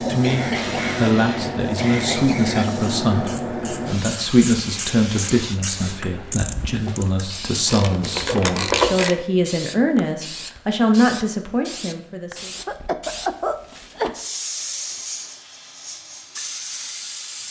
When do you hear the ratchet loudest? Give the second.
9 s.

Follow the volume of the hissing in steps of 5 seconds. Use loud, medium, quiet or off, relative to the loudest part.
loud, medium, medium, medium.